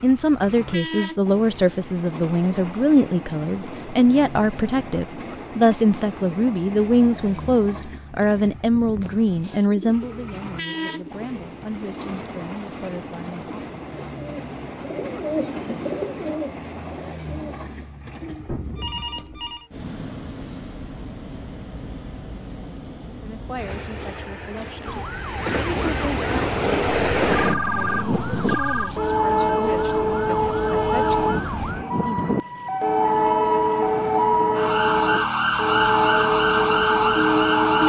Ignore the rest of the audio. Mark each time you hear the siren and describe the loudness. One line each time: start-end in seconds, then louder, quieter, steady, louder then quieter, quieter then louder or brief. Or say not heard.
24.9-37.8 louder.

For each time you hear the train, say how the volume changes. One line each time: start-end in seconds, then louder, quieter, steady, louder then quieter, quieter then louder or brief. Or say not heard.
0.0-37.8 louder.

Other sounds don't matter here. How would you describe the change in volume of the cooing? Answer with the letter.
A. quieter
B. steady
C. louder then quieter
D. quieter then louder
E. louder
C.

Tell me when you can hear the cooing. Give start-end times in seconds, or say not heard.
9.6-18.5.